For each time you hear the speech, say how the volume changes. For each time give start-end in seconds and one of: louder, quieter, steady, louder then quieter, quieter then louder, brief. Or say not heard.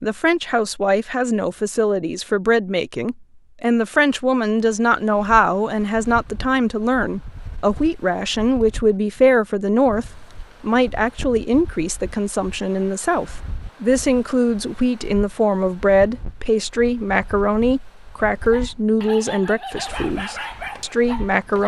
0.0-21.6 steady.